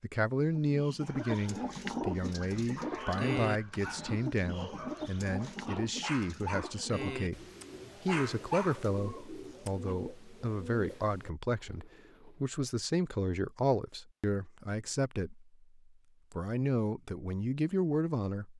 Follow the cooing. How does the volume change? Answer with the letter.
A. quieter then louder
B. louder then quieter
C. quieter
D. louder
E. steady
C.